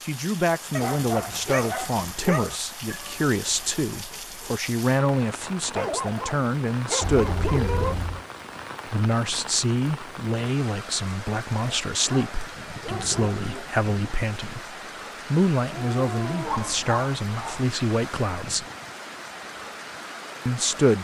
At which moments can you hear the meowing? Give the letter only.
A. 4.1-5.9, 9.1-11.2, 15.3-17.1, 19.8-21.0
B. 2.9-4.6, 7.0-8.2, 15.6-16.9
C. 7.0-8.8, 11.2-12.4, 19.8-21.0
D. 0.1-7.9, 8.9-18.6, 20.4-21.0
B.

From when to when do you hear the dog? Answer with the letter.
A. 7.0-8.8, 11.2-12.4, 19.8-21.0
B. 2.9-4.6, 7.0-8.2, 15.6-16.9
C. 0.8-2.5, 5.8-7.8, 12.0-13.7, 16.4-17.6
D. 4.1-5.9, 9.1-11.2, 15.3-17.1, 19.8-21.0
C.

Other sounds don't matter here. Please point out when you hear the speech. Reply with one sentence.
You can hear the speech from 0.1 to 7.9 s, from 8.9 to 18.6 s and from 20.4 to 21.0 s.